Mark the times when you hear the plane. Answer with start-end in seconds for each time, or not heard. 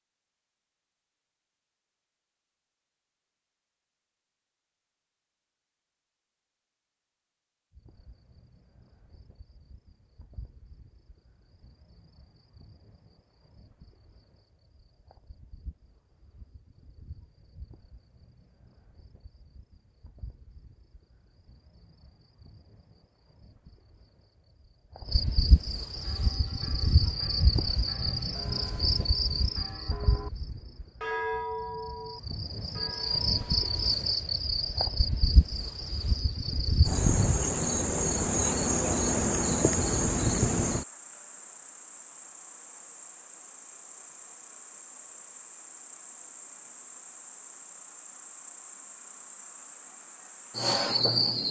not heard.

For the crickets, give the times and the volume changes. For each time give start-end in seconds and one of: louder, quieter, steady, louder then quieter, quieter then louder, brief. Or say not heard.
7.7-51.4 louder then quieter.